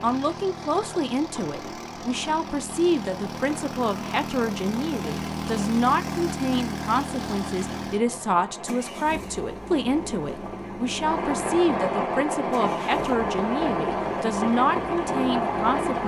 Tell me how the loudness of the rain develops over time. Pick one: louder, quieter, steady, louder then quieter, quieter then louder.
louder.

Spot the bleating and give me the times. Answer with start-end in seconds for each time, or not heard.
not heard.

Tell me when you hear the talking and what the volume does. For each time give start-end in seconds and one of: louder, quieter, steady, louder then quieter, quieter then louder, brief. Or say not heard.
0.0-16.0 steady.